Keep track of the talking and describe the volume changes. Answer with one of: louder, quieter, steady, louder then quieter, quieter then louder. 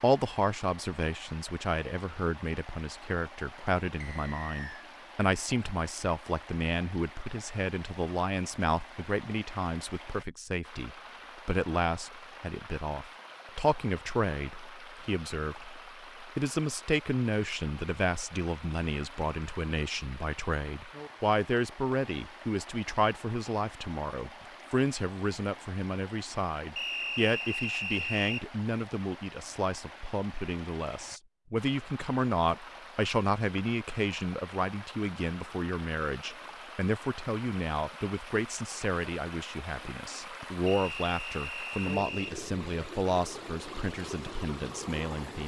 steady.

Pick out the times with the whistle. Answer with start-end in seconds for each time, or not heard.
4.0-4.8, 26.8-28.4, 40.6-42.4.